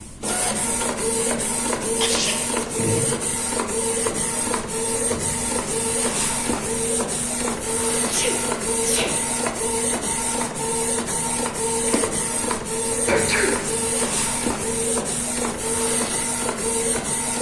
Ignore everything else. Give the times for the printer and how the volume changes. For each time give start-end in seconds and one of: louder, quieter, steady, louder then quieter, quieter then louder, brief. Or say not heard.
0.0-17.3 steady.